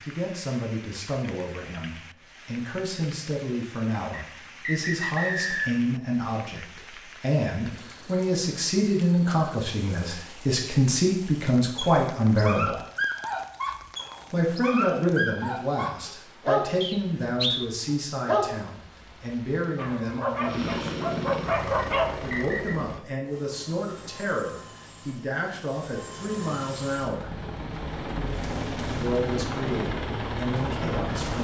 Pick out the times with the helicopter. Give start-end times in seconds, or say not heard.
20.4-31.3.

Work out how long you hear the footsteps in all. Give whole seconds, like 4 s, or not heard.
not heard.